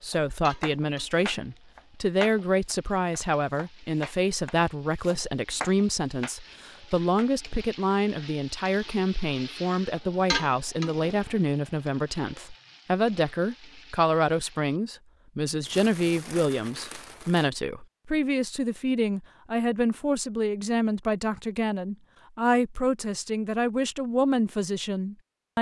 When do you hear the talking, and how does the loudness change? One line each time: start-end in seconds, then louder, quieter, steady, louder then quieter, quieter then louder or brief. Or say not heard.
0.0-25.5 steady.